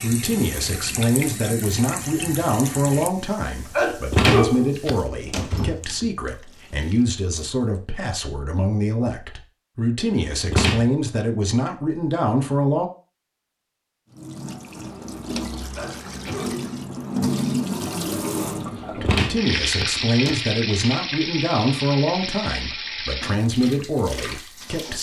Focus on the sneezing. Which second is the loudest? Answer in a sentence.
The loudest moment of the sneezing is at 4 seconds.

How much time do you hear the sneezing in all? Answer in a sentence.
The sneezing can be heard for 2 seconds in total.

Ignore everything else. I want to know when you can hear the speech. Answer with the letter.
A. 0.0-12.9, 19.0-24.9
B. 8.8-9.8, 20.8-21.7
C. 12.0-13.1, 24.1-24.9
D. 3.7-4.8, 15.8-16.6
A.